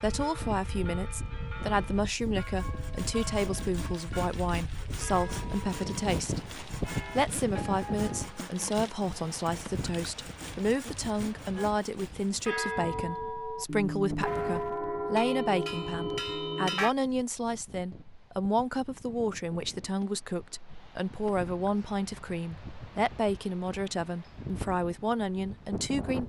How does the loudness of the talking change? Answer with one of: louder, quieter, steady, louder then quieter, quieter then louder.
steady.